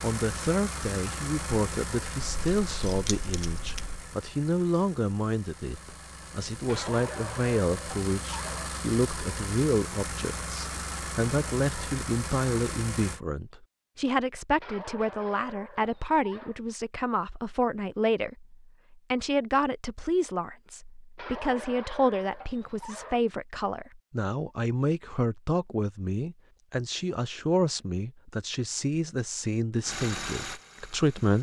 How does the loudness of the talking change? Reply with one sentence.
The volume of the talking stays about the same.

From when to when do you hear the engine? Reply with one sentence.
The engine can be heard from 0.0 to 13.2 s and from 29.8 to 31.3 s.